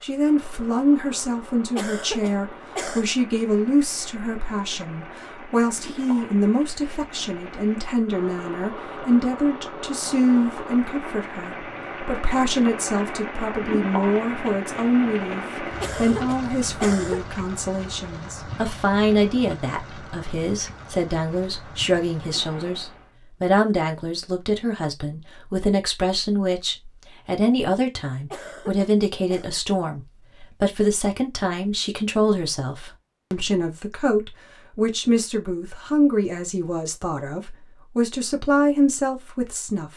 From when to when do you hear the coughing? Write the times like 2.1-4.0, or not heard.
1.8-3.0, 15.8-17.2, 28.3-29.4.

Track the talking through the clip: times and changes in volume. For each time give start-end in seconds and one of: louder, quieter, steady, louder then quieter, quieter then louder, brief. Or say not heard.
0.0-39.9 steady.